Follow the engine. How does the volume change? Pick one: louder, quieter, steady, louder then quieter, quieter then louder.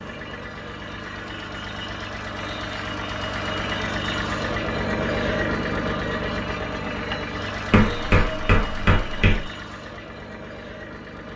louder then quieter.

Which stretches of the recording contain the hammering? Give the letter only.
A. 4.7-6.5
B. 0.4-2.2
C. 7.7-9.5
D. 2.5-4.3
C.